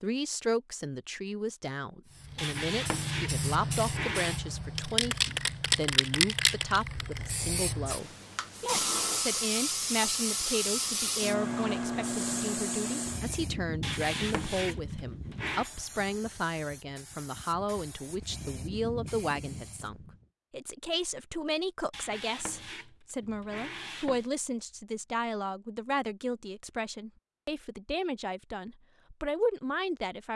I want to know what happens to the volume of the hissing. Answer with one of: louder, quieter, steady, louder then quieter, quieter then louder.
quieter.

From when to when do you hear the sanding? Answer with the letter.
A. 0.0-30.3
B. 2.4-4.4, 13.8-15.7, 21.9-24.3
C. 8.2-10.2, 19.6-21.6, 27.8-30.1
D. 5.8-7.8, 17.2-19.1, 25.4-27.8
B.